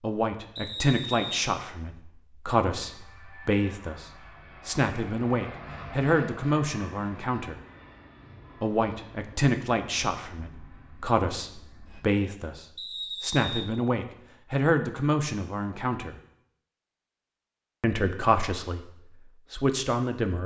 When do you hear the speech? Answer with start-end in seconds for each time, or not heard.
0.0-7.6, 8.6-16.1, 17.8-20.4.